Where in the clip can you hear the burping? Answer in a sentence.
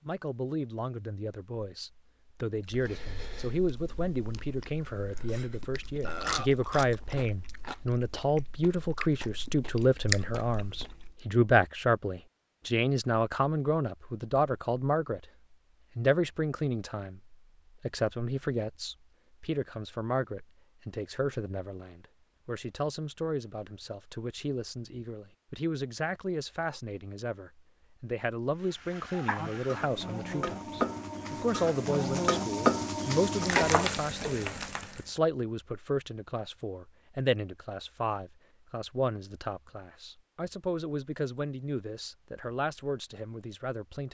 The burping can be heard from 6.0 to 6.5 s.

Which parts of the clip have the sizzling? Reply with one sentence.
You can hear the sizzling from 28.6 to 35.2 s.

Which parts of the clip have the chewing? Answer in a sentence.
You can hear the chewing from 2.7 to 11.2 s.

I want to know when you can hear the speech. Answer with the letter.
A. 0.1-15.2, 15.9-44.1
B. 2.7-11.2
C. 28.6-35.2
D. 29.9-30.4
A.